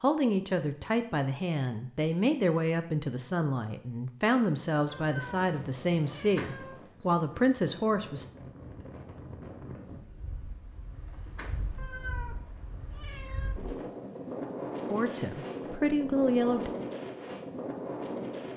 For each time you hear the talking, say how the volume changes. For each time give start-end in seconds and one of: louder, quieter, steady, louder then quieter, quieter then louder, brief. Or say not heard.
0.0-8.2 steady
14.8-16.7 brief.